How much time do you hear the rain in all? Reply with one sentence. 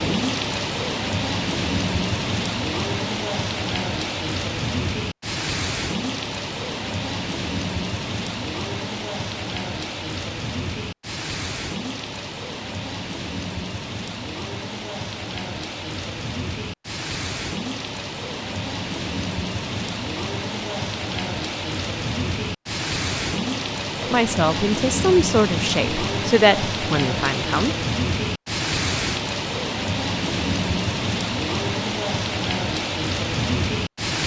The rain can be heard for 34 seconds in total.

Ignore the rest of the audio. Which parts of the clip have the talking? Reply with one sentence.
The talking can be heard from 24.0 to 27.8 s.